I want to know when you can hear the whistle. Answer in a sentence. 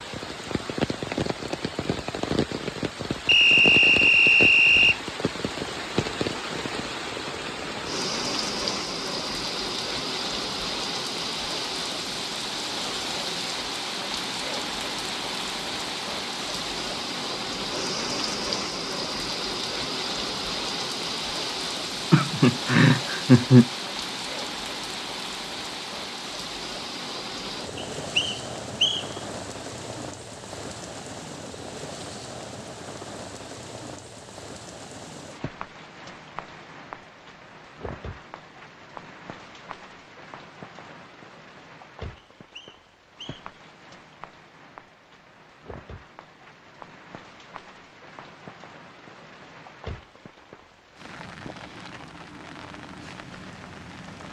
The whistle can be heard from 3.2 to 5.0 s, from 27.8 to 29.1 s and from 42.1 to 43.5 s.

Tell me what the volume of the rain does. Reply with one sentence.
The volume of the rain goes down.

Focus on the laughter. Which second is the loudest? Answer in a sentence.
The loudest moment of the laughter is at 23 seconds.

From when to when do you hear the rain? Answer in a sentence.
The rain can be heard from 0.0 to 54.2 s.